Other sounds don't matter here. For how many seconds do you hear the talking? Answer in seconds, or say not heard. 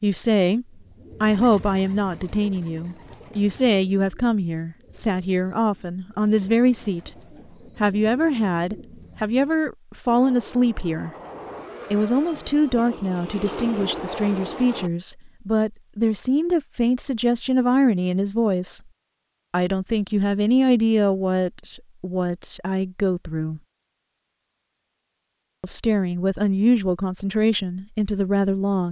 25 s.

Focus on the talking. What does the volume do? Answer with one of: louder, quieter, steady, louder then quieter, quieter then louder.
steady.